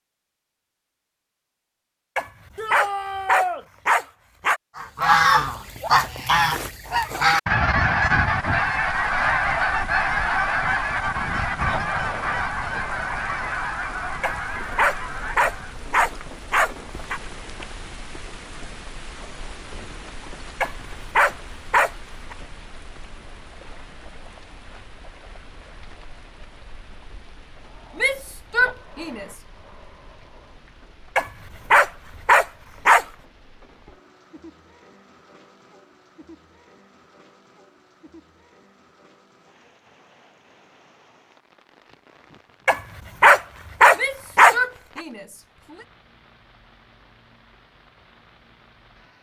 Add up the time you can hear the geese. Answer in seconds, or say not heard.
11 s.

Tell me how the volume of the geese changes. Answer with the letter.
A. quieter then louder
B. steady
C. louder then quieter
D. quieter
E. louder
D.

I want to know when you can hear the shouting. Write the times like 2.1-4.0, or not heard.
2.5-3.6, 27.9-29.2, 44.0-45.9.